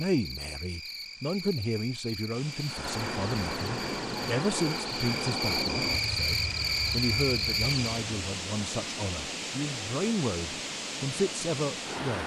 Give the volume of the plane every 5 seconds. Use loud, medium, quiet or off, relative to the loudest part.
loud, loud, off.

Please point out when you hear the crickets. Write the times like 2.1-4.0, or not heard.
0.0-8.1.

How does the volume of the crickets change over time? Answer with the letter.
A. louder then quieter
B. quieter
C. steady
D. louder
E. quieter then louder
D.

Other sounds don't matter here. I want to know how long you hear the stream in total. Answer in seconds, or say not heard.
10 s.